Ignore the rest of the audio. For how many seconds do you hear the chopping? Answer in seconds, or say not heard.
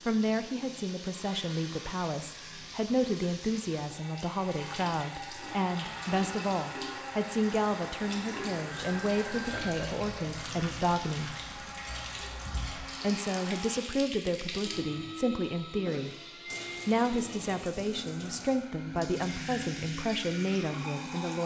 not heard.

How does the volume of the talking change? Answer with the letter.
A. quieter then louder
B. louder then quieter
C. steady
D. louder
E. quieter
C.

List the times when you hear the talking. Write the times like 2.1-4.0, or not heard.
0.1-11.3, 13.0-16.1, 16.9-21.4.